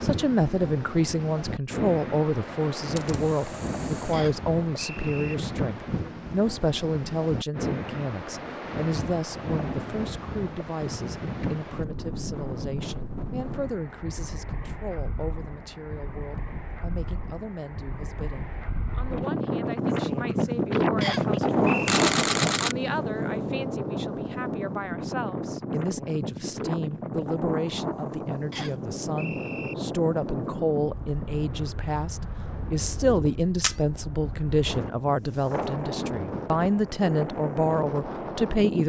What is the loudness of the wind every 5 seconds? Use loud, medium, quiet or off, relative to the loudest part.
medium, medium, medium, medium, loud, medium, medium, medium.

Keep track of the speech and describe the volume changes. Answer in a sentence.
The volume of the speech goes down, then up.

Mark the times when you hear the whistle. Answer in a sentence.
The whistle can be heard from 4.1 to 5.3 s, from 21.0 to 22.0 s and from 28.5 to 29.8 s.